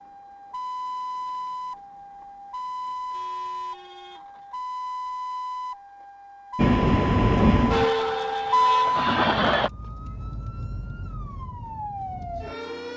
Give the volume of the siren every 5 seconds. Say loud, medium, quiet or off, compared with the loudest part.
medium, loud, medium.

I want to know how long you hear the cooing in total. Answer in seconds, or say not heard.
not heard.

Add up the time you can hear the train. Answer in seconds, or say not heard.
3 s.